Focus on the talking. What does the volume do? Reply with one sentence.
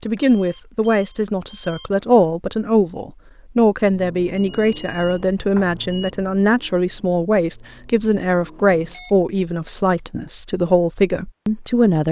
The loudness of the talking stays about the same.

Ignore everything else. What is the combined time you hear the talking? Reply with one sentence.
The talking can be heard for 12 seconds in total.